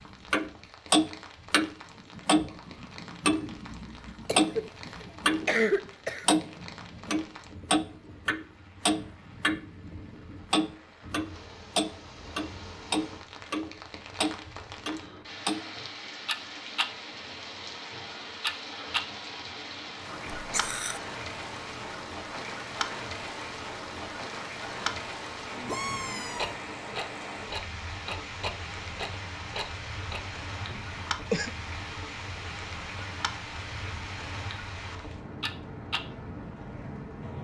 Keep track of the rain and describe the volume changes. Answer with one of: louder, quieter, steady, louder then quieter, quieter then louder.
louder.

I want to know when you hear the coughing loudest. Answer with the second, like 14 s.
6 s.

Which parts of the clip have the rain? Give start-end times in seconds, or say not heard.
0.0-37.3.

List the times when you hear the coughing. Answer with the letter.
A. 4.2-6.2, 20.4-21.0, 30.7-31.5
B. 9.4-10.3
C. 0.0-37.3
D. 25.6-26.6
A.